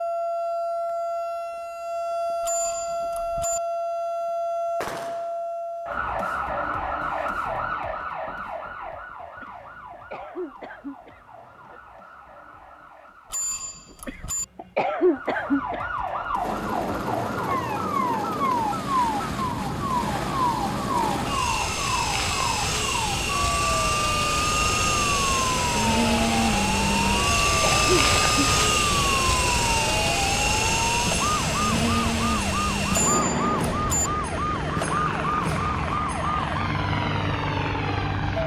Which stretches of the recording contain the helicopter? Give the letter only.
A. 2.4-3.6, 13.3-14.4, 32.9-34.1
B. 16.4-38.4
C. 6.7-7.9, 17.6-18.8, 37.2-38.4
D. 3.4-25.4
B.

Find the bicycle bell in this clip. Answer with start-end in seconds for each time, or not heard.
2.4-3.6, 13.3-14.4, 32.9-34.1.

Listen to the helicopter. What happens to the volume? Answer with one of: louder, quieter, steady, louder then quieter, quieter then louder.
louder then quieter.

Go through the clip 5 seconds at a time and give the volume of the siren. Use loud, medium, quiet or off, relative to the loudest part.
loud, loud, quiet, loud, loud, loud, loud, loud.